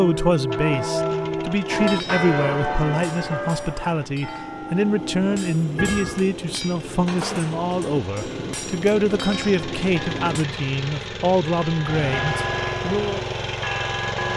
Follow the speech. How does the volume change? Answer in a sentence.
The loudness of the speech stays about the same.